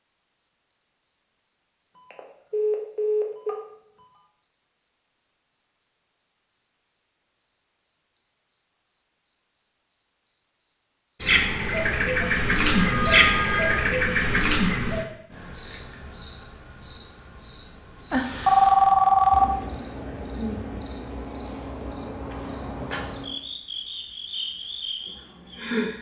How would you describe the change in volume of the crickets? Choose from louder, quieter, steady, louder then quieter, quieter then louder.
louder then quieter.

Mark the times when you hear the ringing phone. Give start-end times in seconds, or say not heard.
1.9-4.1, 12.2-13.8, 18.1-19.6.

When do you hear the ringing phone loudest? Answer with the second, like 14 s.
19 s.